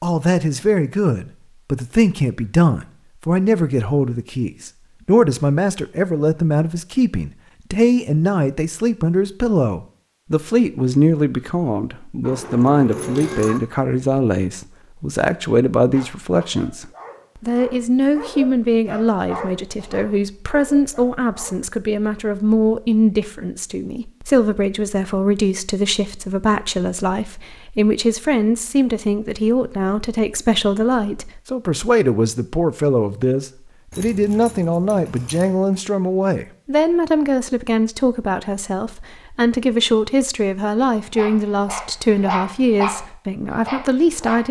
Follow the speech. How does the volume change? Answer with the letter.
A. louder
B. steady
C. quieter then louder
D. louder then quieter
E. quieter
B.